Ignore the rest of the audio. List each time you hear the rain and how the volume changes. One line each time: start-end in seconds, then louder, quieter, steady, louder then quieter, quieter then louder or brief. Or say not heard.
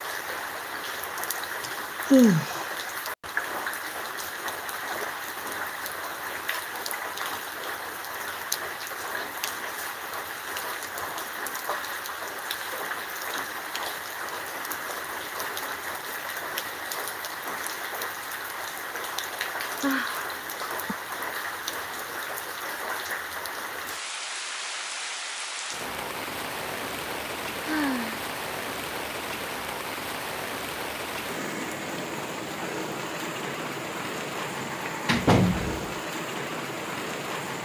0.0-37.6 steady.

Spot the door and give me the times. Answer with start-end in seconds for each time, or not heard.
34.6-36.0.